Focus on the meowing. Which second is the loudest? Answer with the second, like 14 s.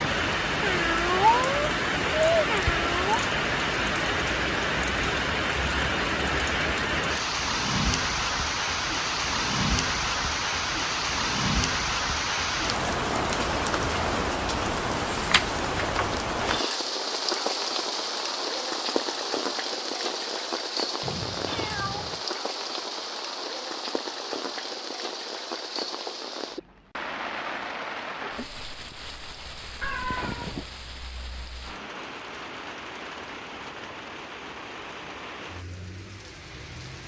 1 s.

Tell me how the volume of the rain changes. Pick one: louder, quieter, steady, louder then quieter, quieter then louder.
quieter.